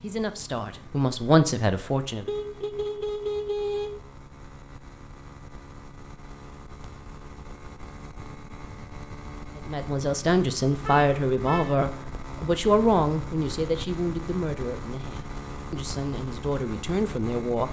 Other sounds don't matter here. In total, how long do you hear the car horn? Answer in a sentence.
You can hear the car horn for 3 seconds altogether.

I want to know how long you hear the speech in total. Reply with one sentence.
You can hear the speech for 10 seconds altogether.